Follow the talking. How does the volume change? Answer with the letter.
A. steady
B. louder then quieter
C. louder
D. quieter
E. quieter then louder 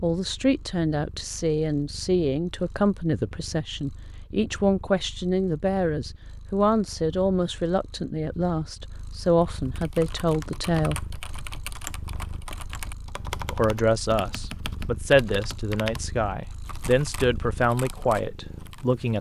A.